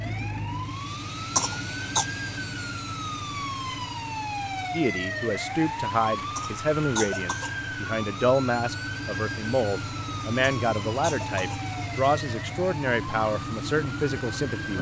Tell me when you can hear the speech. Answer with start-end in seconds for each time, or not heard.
4.7-14.7.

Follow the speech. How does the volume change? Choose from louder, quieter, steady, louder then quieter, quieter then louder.
steady.